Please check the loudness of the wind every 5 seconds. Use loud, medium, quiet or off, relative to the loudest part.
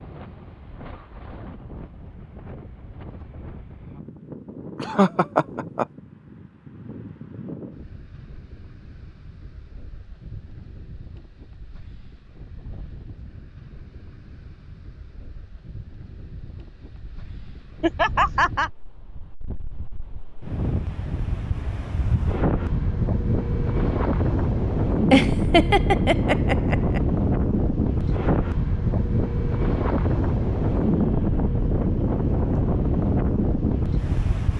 quiet, quiet, quiet, quiet, loud, loud, loud.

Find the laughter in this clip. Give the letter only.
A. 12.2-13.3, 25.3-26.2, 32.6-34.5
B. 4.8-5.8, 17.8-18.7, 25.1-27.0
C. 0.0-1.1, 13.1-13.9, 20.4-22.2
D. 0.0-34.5
B.